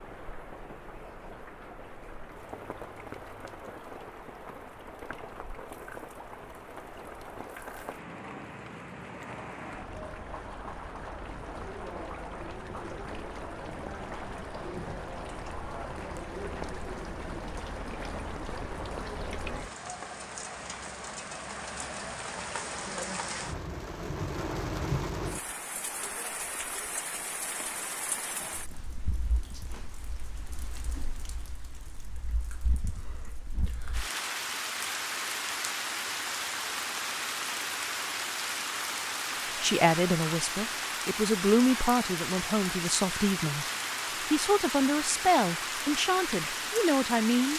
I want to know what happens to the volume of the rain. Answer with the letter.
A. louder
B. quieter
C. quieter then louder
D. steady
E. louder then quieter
A.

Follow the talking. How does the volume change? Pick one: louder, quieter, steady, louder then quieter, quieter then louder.
steady.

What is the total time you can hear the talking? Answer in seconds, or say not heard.
7 s.